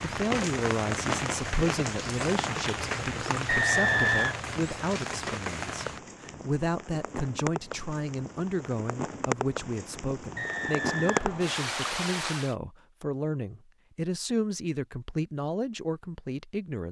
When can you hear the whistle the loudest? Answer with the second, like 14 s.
4 s.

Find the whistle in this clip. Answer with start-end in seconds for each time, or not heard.
3.5-4.4, 10.3-12.1.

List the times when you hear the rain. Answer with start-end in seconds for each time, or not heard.
0.0-12.6.